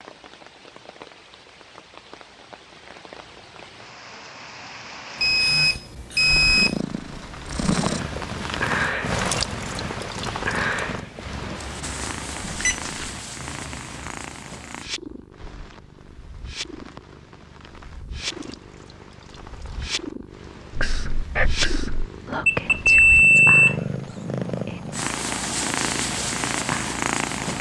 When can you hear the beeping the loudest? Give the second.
23 s.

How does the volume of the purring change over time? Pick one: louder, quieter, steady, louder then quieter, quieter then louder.
quieter then louder.